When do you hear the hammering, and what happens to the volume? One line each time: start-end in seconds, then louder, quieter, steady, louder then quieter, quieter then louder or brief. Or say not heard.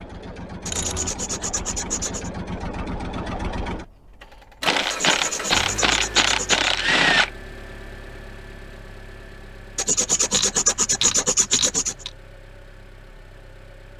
not heard.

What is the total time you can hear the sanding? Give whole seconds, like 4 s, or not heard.
6 s.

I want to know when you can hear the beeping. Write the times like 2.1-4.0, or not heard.
not heard.